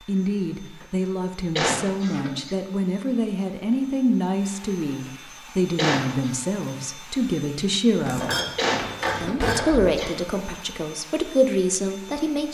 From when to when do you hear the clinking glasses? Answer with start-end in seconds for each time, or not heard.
8.1-9.9.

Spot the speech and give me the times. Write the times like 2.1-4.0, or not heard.
0.1-8.3, 9.2-12.4.